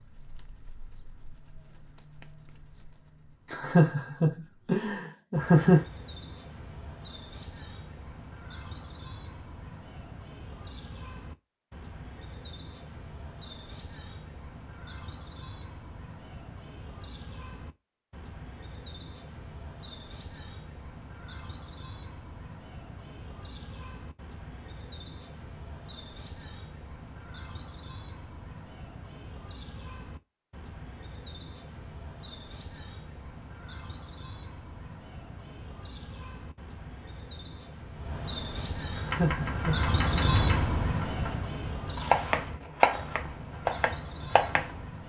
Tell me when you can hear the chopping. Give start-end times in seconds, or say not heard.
39.1-44.8.